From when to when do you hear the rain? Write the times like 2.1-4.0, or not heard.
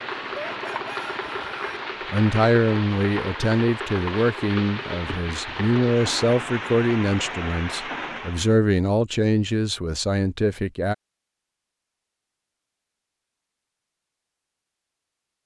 0.0-8.6.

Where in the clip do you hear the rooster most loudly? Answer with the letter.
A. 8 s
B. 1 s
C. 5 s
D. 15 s
B.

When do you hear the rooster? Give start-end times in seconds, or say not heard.
0.3-1.8.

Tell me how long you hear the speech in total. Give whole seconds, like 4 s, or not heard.
9 s.